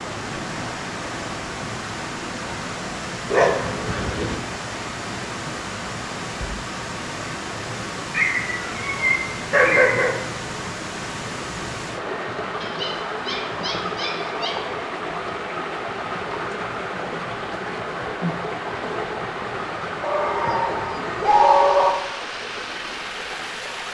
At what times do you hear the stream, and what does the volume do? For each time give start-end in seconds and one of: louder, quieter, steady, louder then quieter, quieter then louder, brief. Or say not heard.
0.0-23.8 steady.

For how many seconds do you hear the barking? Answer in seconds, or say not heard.
7 s.